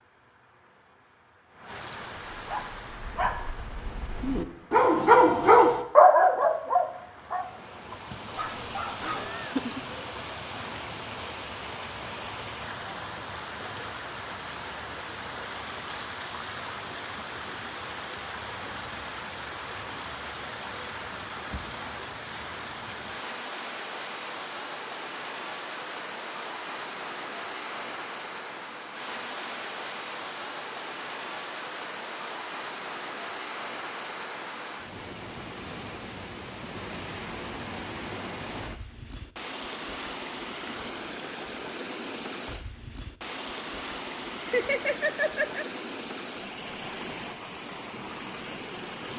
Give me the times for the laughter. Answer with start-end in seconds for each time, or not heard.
9.0-9.8, 44.5-45.6.